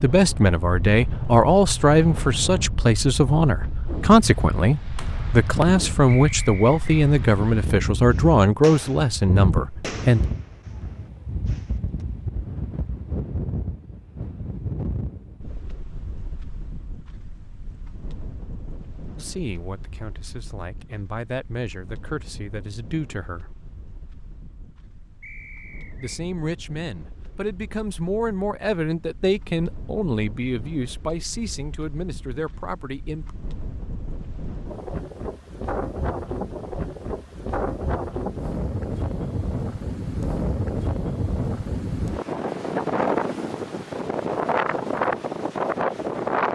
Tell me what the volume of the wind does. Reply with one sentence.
The loudness of the wind goes down, then up.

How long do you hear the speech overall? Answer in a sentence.
You can hear the speech for 22 seconds altogether.